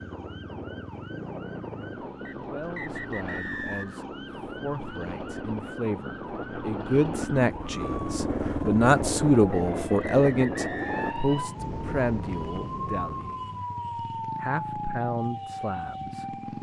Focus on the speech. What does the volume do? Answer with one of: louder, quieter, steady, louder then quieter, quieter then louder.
louder then quieter.